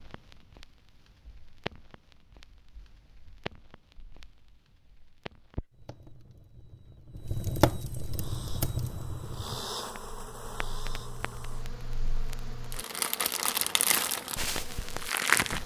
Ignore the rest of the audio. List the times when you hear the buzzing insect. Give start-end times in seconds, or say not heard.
8.2-15.6.